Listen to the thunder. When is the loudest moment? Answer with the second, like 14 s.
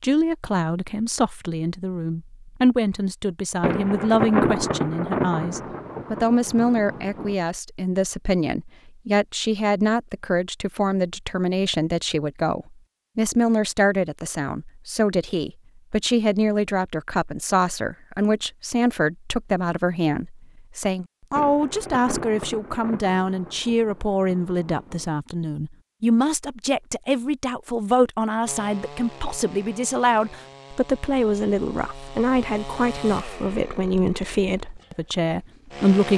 4 s.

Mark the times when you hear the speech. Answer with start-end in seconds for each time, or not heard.
0.0-36.1.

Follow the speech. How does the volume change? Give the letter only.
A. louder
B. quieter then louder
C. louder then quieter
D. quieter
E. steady
E.